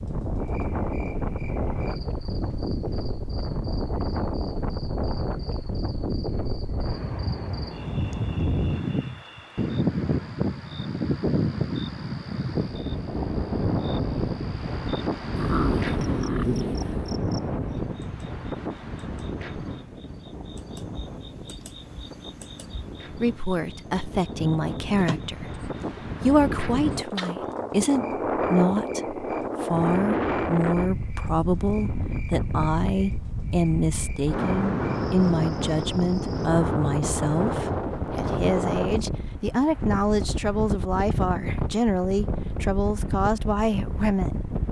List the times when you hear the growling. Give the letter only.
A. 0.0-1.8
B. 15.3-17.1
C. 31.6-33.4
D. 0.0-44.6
B.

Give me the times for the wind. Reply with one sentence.
You can hear the wind from 0.0 to 44.6 s.